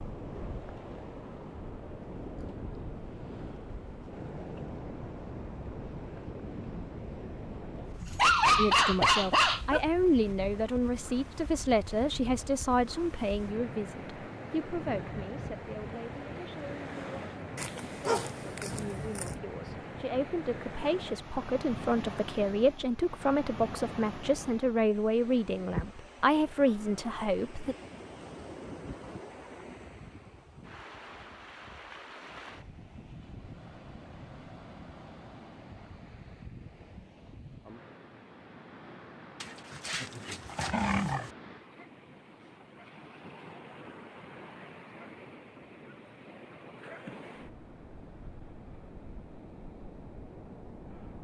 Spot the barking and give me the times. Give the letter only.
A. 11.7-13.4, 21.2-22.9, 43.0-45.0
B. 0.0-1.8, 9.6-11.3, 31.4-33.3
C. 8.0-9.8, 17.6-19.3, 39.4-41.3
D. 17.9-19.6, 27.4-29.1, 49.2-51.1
C.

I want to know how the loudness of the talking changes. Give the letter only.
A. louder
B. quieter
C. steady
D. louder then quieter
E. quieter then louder
E.